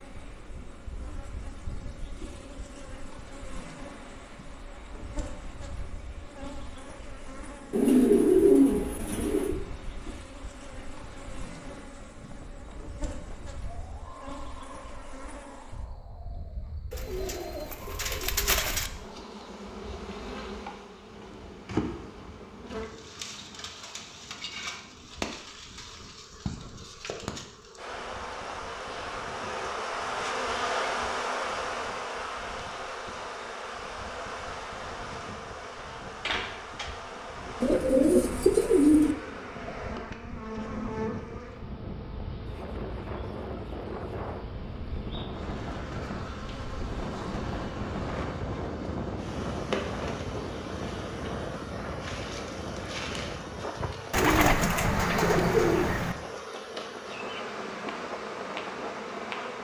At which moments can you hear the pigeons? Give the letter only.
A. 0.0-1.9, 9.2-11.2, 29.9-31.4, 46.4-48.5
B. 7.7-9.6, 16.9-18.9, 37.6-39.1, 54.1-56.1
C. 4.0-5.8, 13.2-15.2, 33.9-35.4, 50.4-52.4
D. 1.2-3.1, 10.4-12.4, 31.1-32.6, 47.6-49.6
B.